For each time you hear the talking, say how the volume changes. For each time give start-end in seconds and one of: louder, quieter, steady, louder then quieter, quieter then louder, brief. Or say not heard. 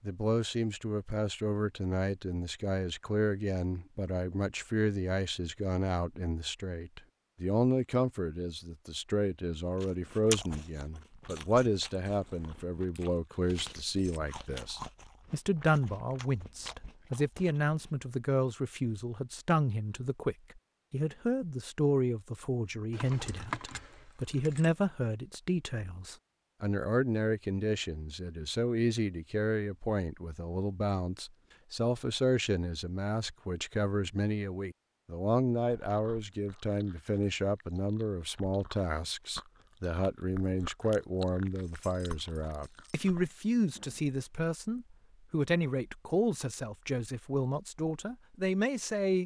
0.0-49.2 steady.